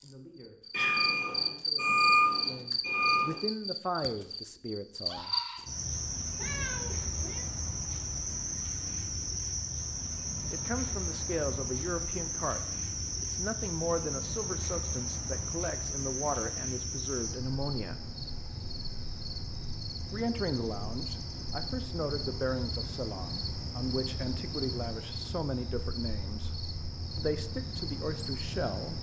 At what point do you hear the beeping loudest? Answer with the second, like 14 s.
2 s.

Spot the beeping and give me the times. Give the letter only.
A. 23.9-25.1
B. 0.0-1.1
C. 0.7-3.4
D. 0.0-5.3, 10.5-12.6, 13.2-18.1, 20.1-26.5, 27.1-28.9
C.